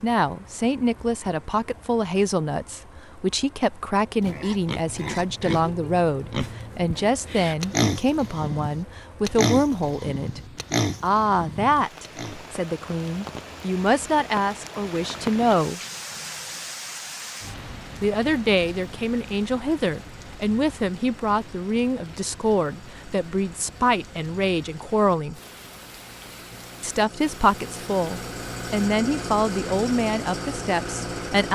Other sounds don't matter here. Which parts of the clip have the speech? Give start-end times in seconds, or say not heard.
0.0-10.4, 11.0-15.8, 18.0-25.4, 26.8-31.5.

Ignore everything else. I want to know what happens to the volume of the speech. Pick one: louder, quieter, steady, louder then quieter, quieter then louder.
steady.